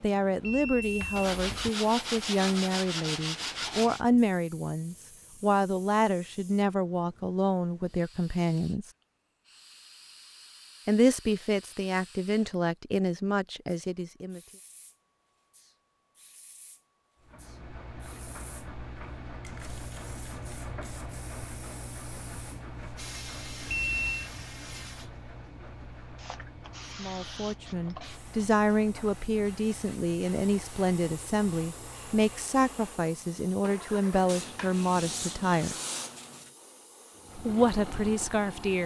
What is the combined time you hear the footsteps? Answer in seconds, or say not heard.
not heard.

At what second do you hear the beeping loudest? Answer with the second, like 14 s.
24 s.